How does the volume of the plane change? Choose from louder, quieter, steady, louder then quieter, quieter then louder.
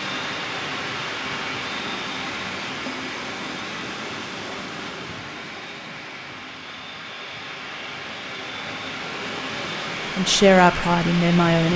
quieter then louder.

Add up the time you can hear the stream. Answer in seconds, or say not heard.
12 s.